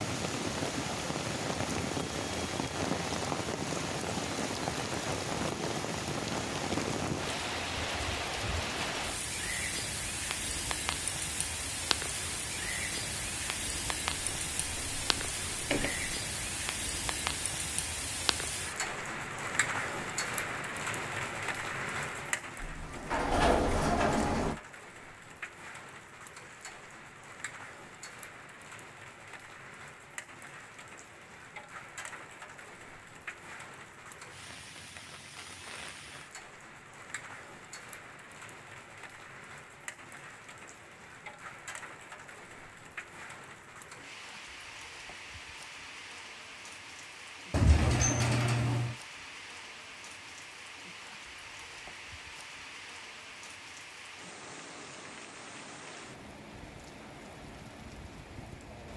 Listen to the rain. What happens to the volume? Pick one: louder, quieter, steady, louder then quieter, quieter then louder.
quieter.